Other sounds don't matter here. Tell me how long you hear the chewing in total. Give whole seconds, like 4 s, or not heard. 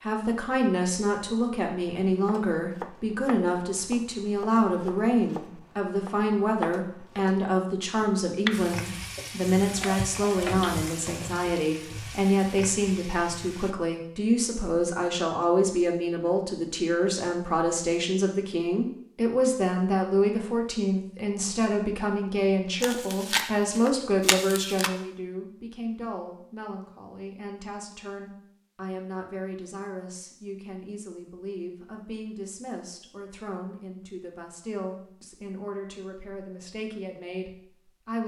4 s.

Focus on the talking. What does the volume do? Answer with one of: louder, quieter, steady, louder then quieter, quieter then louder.
quieter.